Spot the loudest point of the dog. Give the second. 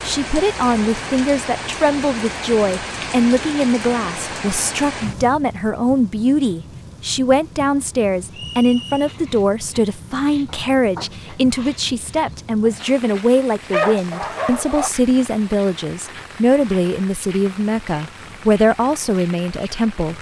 14 s.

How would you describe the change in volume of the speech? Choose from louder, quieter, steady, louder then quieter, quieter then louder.
steady.